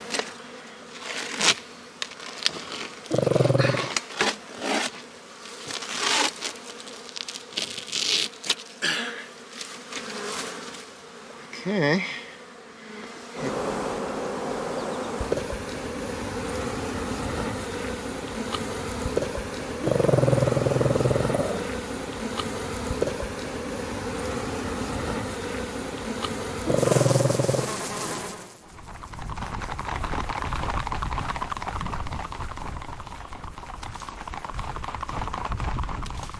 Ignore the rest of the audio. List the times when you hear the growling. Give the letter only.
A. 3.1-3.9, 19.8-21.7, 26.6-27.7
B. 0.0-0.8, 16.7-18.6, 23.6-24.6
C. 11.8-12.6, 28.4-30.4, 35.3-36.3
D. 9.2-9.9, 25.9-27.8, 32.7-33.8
A.